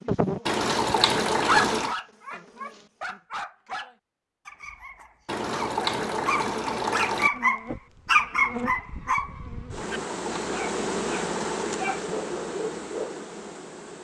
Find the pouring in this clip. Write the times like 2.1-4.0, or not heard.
0.5-1.9, 5.2-7.3, 9.8-11.8.